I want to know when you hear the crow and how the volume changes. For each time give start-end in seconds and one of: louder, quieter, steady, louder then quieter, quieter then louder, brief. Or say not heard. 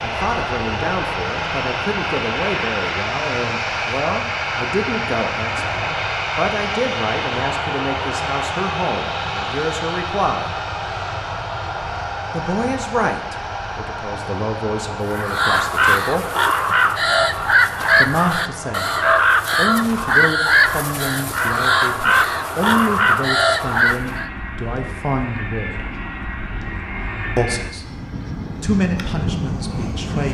15.1-24.3 steady.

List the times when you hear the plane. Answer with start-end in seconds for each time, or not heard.
0.0-30.2.